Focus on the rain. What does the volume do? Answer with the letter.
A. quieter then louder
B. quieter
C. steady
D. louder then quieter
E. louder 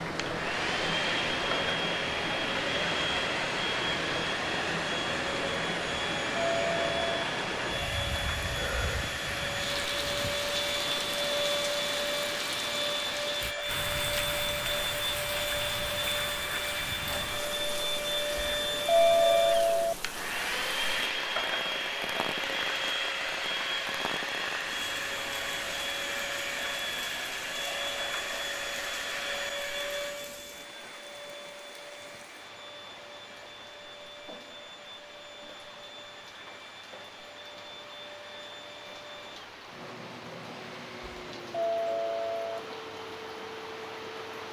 B.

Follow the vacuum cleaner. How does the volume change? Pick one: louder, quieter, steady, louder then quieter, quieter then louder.
quieter.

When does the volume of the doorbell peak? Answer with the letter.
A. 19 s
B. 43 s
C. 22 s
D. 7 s
A.